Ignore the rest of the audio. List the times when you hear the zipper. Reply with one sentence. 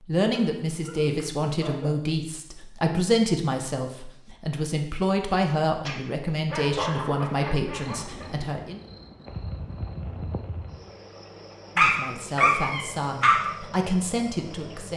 You can't hear the zipper here.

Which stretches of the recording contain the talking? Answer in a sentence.
You can hear the talking from 0.1 to 8.8 s and from 11.8 to 14.9 s.